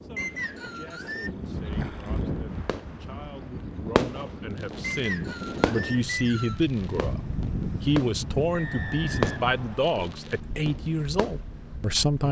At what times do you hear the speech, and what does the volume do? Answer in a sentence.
You can hear the speech from 0.0 to 12.2 s, getting louder.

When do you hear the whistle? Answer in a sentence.
You can hear the whistle from 0.1 to 1.3 s, from 4.8 to 6.7 s and from 8.5 to 9.9 s.